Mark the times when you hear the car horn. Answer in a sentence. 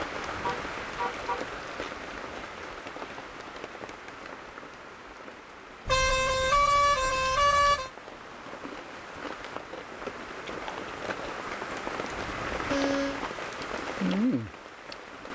You can hear the car horn from 0.4 to 1.4 s, from 5.8 to 7.9 s and from 12.1 to 13.2 s.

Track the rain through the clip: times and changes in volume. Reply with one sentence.
You can hear the rain from 0.0 to 15.3 s, getting quieter then louder.